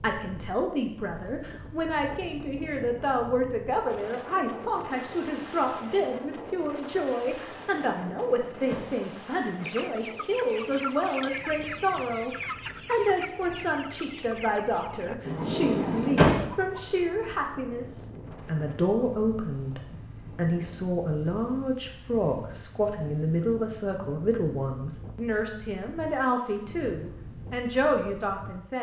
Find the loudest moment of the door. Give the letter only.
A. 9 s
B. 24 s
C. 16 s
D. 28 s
C.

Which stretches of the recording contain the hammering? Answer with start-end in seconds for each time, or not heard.
not heard.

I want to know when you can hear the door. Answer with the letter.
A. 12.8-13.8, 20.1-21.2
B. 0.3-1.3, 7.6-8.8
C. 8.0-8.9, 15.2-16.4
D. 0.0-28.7
C.